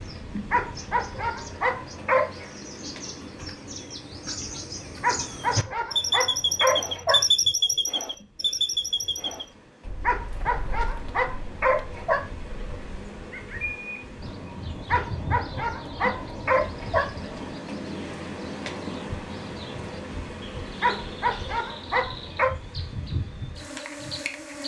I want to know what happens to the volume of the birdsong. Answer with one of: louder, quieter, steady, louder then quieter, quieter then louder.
louder then quieter.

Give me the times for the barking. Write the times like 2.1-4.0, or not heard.
0.5-2.5, 5.0-7.2, 10.0-12.3, 14.8-17.1, 20.8-22.5.